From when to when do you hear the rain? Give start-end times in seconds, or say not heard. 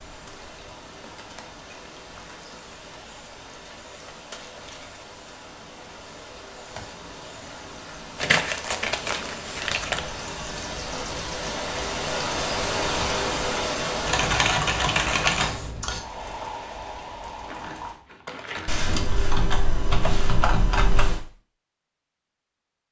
0.0-18.0.